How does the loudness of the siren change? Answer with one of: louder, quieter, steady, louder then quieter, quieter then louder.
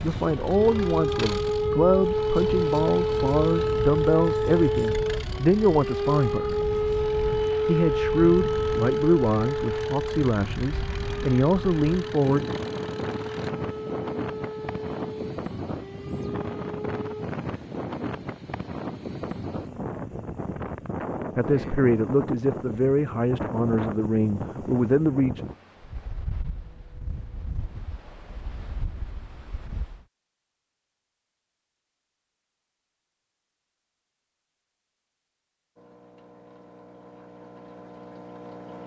quieter.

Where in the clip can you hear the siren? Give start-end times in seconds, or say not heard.
0.1-17.3.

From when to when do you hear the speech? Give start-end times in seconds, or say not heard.
0.0-6.7, 7.7-12.4, 21.4-25.4.